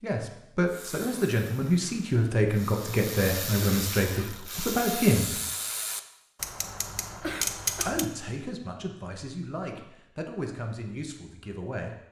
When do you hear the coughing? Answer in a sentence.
The coughing can be heard from 3.6 to 4.3 s and from 7.2 to 8.0 s.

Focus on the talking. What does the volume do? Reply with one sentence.
The loudness of the talking goes down.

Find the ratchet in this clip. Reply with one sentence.
The ratchet can be heard from 0.7 to 8.1 s.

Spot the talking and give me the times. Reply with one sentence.
You can hear the talking from 0.0 to 5.3 s and from 7.8 to 11.9 s.